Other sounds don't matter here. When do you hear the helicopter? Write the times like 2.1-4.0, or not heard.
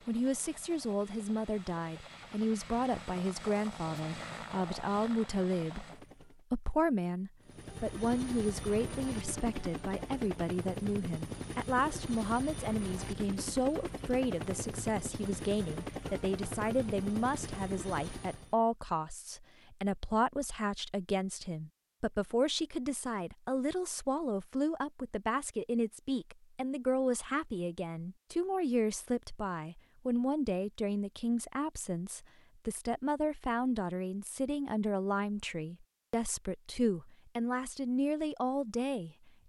0.0-6.5, 7.4-18.6.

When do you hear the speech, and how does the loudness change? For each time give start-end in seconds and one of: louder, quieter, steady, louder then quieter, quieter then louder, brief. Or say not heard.
0.1-39.3 steady.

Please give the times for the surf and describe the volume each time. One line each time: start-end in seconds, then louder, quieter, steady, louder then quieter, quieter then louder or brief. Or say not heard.
not heard.